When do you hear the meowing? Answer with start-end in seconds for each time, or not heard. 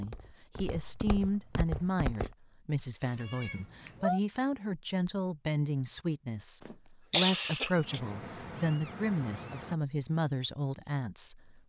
3.0-4.2, 7.8-9.8.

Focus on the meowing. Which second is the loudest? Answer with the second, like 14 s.
4 s.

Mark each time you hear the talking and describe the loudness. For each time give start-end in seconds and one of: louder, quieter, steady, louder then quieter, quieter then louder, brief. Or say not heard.
0.0-11.6 steady.